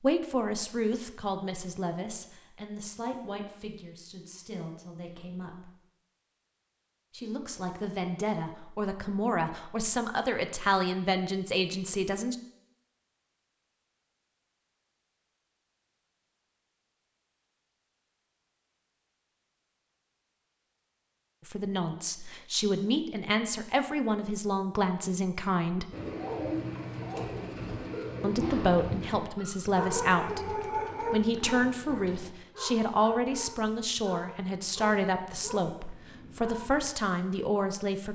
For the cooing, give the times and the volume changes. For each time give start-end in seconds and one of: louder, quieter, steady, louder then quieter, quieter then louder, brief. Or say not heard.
25.9-32.3 quieter.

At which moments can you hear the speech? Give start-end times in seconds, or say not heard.
0.0-5.7, 7.1-12.3, 21.4-25.9, 28.2-38.1.